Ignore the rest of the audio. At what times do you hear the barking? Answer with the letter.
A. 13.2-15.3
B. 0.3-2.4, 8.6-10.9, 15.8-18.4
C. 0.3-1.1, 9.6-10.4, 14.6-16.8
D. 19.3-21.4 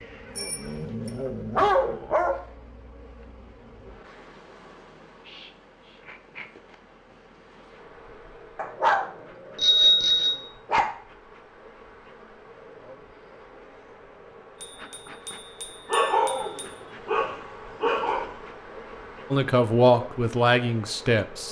B.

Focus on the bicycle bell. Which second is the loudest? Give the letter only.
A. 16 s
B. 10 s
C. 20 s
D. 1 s
B.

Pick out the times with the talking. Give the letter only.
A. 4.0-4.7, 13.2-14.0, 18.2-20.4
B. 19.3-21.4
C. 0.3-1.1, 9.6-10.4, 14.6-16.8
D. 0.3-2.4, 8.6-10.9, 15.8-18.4
B.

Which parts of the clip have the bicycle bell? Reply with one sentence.
The bicycle bell can be heard from 0.3 to 1.1 s, from 9.6 to 10.4 s and from 14.6 to 16.8 s.